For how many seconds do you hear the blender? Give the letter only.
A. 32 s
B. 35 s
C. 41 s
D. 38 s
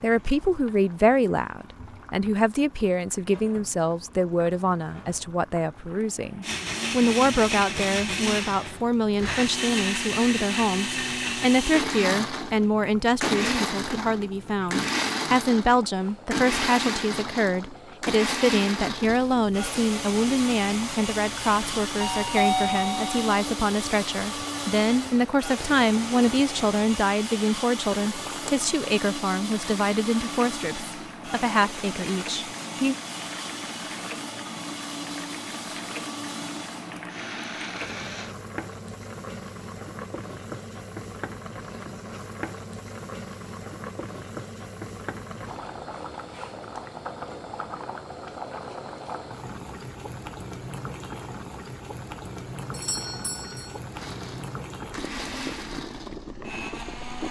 B.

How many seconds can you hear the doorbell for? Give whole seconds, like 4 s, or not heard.
2 s.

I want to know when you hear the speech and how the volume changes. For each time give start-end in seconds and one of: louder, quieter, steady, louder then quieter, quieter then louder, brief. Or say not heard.
0.0-33.0 steady.